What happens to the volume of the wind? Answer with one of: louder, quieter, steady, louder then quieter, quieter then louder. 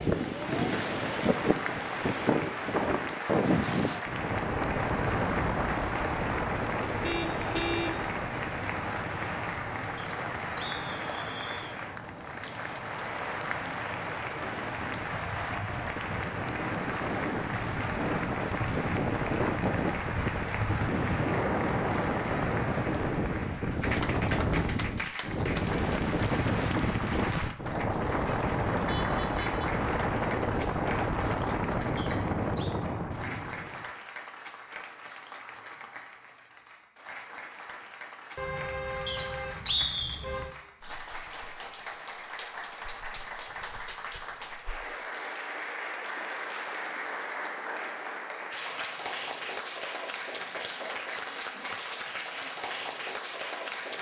quieter then louder.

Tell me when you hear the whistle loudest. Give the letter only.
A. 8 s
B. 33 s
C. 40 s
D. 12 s
C.